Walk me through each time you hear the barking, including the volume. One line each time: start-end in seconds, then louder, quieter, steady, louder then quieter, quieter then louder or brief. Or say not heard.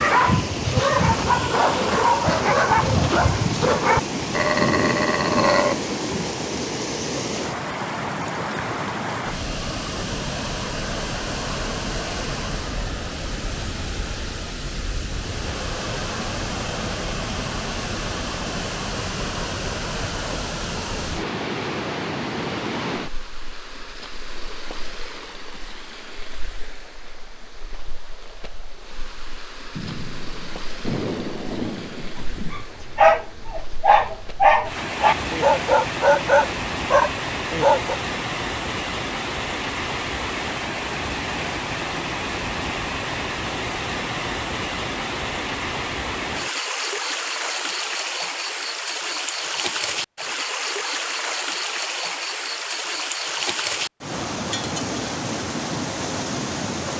0.0-5.8 steady
32.5-38.0 steady.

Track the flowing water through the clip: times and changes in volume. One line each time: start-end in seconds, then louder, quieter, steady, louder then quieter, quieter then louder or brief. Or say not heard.
0.0-56.9 quieter then louder.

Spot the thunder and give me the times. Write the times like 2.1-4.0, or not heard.
3.5-6.3, 29.8-32.6.